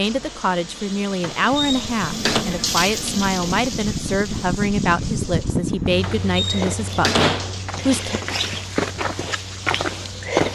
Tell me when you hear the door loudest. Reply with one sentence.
The loudest moment of the door is at 7 seconds.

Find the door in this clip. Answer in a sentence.
The door can be heard from 1.2 to 2.5 s and from 6.0 to 7.6 s.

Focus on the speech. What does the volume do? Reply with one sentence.
The loudness of the speech stays about the same.